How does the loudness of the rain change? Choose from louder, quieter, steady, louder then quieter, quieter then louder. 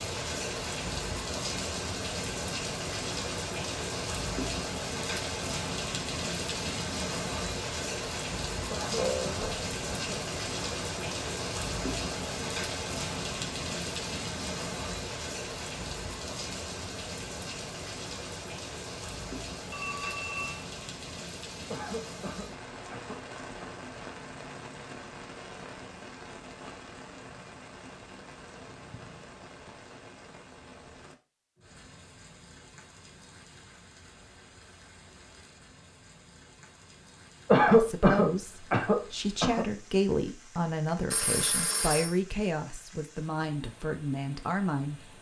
quieter.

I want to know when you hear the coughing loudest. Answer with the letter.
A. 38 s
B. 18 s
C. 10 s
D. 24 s
A.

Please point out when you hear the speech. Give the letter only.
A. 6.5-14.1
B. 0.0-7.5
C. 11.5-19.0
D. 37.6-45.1
D.